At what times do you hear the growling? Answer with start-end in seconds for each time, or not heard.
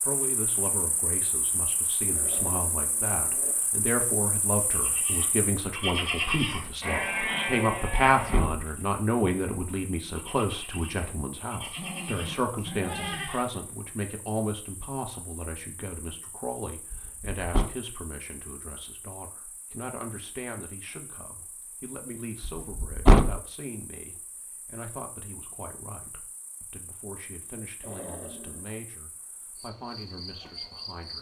2.1-3.5, 11.6-13.3, 27.8-28.7.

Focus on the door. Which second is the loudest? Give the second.
23 s.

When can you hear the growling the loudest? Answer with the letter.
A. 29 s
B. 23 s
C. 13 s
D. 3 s
C.